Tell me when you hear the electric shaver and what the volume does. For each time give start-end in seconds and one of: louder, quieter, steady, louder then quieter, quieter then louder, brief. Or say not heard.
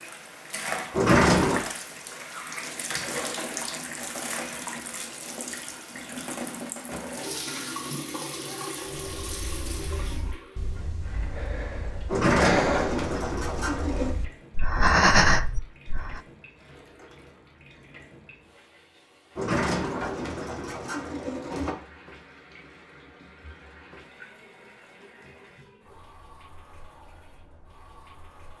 not heard.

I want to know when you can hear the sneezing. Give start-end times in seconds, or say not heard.
not heard.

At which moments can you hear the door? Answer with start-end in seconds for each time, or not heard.
0.9-1.6, 12.1-14.2, 19.4-21.8.